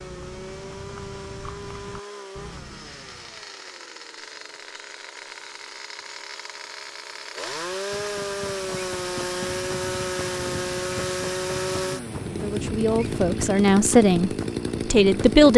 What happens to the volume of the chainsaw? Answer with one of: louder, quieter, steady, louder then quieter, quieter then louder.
louder.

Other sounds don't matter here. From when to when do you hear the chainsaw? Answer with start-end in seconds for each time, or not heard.
0.0-15.5.